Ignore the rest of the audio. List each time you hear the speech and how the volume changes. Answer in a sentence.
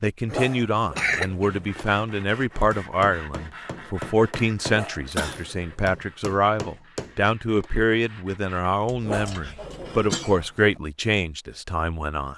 You can hear the speech from 0.0 to 12.3 s, at a steady volume.